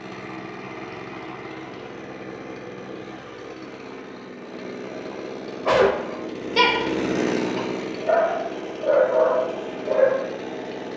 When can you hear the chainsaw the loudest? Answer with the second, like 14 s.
7 s.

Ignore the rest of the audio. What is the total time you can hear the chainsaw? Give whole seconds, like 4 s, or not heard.
11 s.